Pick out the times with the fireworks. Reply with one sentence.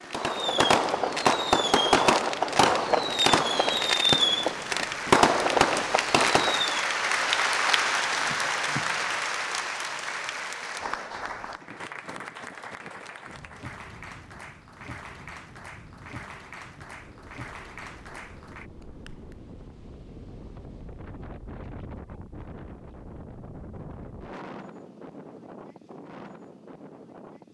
The fireworks can be heard from 0.1 to 6.8 s.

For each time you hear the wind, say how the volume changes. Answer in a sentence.
You can hear the wind from 11.2 to 27.4 s, getting louder.